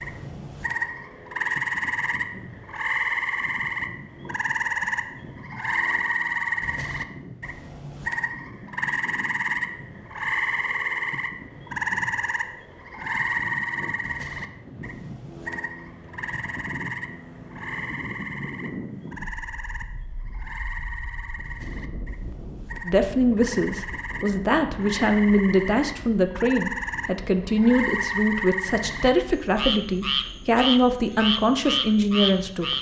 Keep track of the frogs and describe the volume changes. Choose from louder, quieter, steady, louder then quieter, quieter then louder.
quieter then louder.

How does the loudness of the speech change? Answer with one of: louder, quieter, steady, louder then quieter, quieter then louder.
steady.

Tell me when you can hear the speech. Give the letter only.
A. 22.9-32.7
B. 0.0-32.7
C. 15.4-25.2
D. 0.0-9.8
A.